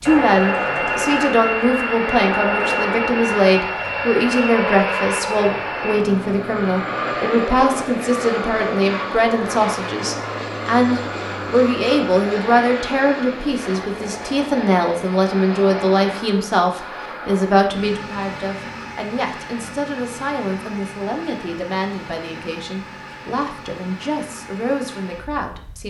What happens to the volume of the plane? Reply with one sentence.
The volume of the plane goes down.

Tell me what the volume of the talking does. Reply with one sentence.
The loudness of the talking goes down.